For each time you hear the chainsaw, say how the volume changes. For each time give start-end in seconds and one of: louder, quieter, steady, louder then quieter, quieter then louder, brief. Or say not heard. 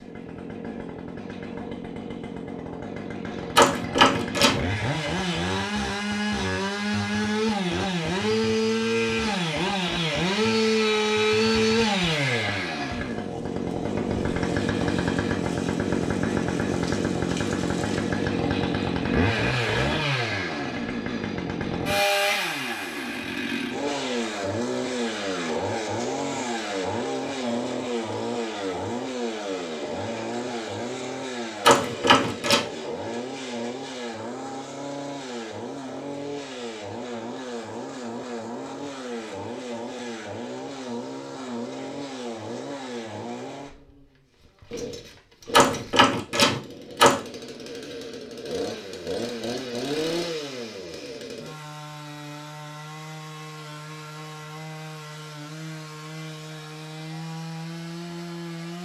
0.0-58.8 quieter.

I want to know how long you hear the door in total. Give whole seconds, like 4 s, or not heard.
4 s.